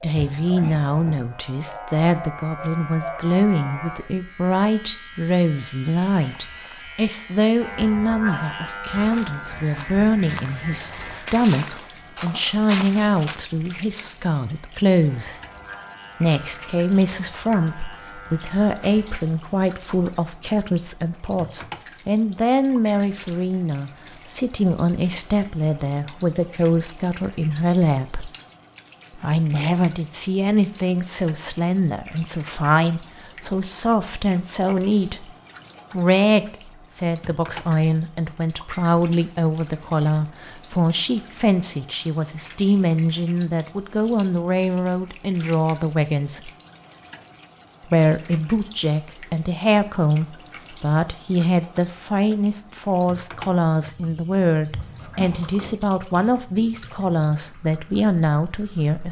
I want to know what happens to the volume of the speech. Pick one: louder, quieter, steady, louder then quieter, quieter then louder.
steady.